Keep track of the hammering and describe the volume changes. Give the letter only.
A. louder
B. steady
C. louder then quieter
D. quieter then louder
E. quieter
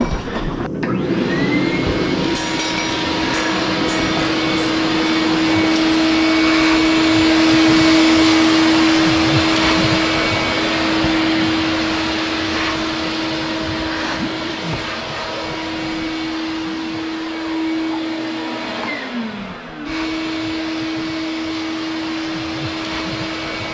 E.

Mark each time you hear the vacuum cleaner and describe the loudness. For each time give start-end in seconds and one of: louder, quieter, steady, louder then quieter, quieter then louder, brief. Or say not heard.
0.0-23.6 louder then quieter.